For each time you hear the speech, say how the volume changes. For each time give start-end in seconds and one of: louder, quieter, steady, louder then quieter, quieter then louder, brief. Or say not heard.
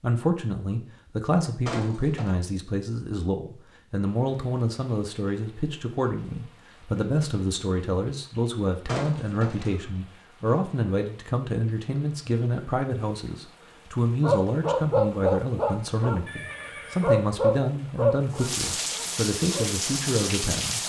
0.0-20.8 steady.